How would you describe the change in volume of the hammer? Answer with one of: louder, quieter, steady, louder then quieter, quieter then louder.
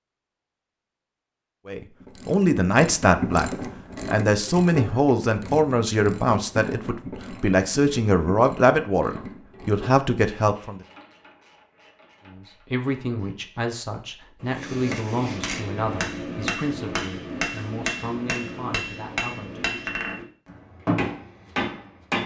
steady.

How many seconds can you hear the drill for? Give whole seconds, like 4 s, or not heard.
not heard.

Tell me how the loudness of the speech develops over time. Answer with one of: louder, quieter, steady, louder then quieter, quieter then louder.
quieter.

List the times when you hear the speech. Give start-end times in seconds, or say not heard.
1.6-10.8, 12.2-19.9.